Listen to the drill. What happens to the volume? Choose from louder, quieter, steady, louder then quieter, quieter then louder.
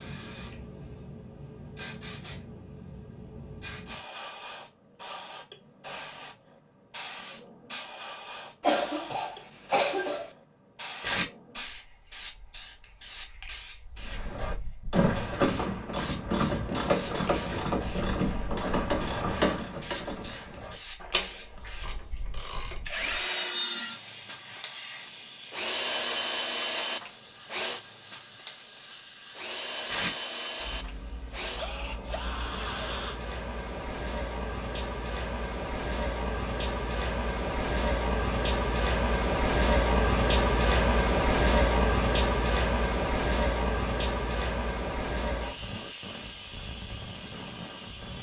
quieter.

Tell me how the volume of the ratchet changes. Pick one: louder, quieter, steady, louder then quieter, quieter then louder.
quieter.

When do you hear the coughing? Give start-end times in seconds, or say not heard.
8.6-10.3.